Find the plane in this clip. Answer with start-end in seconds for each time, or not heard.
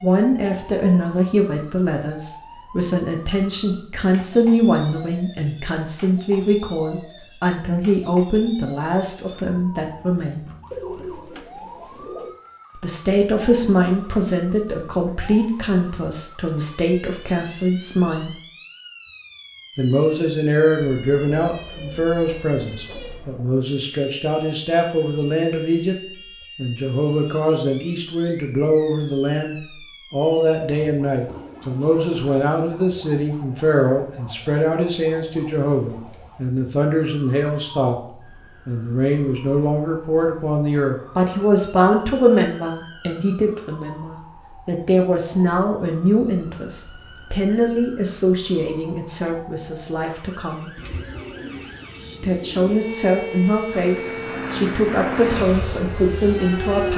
53.7-56.9.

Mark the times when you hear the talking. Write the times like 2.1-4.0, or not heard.
0.0-10.5, 12.8-18.4, 19.8-25.9, 26.6-38.0, 38.6-50.7, 52.2-56.9.